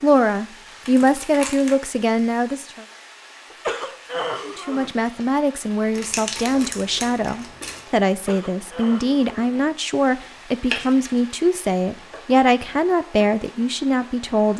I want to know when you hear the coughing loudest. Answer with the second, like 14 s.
4 s.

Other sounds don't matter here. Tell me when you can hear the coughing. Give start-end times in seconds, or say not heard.
3.5-4.9, 8.1-9.3.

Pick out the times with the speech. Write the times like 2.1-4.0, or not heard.
0.0-2.9, 4.5-14.5.